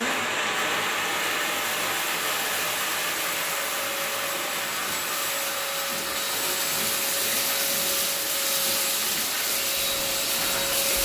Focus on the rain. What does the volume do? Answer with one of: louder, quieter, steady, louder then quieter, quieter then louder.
quieter.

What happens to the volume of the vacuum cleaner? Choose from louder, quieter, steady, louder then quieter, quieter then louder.
louder.